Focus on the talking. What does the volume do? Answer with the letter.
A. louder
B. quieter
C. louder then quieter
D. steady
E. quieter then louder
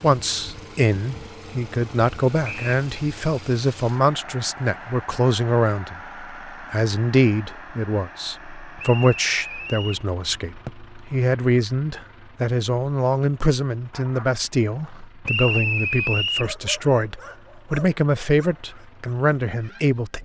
D.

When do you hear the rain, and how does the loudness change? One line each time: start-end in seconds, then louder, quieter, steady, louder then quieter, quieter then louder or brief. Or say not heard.
not heard.